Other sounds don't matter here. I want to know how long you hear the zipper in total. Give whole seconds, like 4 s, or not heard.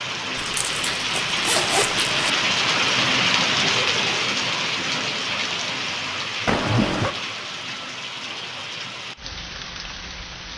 3 s.